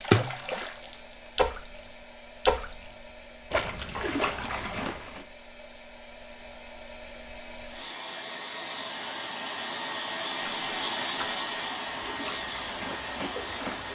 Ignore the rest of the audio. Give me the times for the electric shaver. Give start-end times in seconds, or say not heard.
not heard.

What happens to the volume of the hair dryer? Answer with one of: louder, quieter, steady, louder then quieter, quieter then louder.
louder.